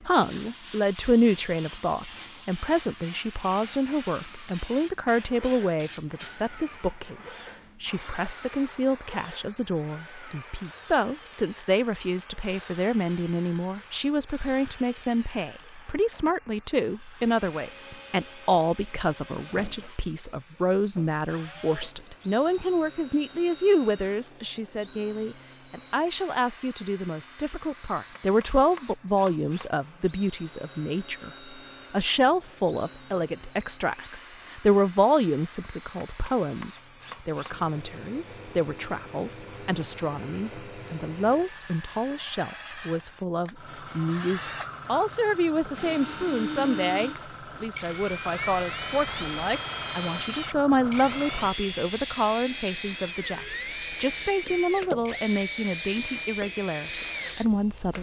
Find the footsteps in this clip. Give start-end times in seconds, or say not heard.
not heard.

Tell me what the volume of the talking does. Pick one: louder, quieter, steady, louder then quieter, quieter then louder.
steady.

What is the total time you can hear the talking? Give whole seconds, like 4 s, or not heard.
57 s.